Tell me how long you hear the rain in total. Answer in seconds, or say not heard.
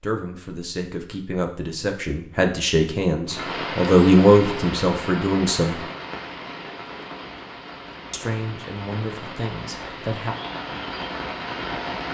9 s.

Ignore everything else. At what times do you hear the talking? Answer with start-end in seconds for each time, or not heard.
0.0-5.8, 8.1-10.3.